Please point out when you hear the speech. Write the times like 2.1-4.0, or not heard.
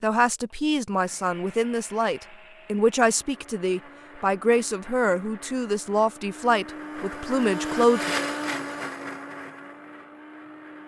0.0-8.1.